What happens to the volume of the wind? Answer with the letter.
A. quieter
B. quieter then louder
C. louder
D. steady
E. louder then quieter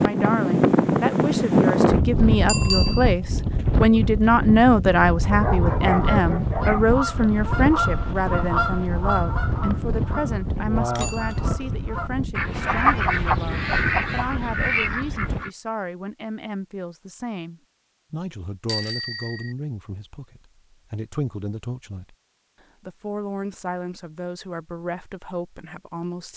A.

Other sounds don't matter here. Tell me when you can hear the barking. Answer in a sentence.
You can hear the barking from 5.3 to 7.3 s.